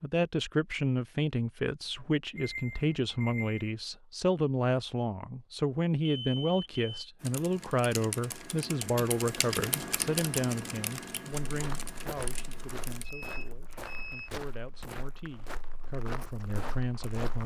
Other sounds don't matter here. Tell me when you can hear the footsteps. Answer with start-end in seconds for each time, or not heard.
11.4-17.4.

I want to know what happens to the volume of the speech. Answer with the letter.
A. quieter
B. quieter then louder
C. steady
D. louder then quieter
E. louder
A.